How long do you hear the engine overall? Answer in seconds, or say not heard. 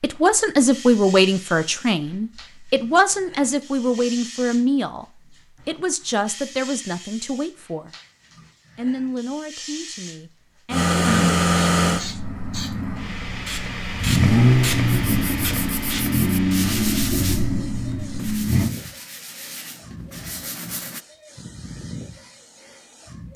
8 s.